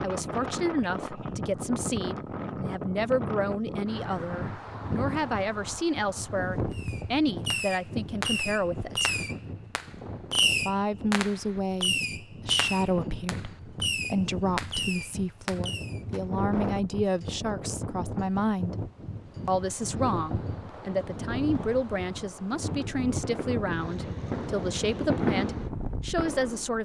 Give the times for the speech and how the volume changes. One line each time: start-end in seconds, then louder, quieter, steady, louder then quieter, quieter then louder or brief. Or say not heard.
0.0-9.1 steady
10.7-18.8 steady
19.4-26.8 steady.